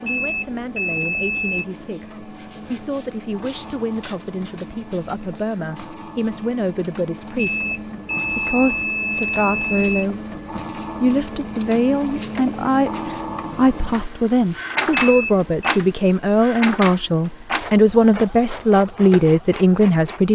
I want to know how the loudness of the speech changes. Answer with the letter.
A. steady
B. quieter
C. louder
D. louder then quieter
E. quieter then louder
C.